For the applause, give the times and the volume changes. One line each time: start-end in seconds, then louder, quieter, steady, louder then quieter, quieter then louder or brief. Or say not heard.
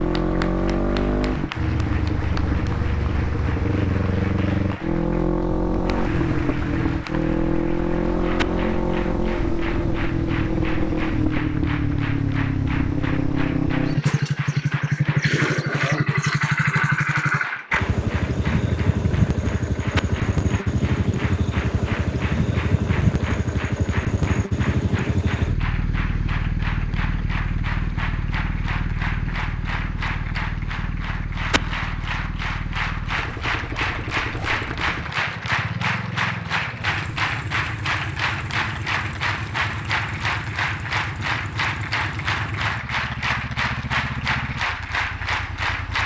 0.0-46.0 louder.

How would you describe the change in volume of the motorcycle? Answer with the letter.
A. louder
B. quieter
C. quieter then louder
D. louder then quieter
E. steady
B.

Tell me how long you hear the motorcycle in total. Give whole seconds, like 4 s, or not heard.
46 s.